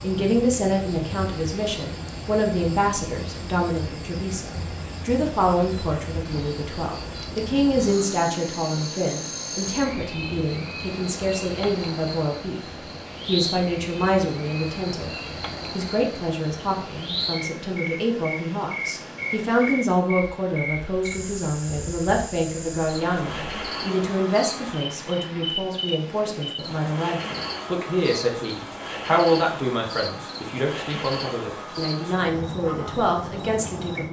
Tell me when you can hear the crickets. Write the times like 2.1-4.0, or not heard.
0.0-34.0.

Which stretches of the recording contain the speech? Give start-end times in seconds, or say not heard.
0.0-15.1, 15.7-34.0.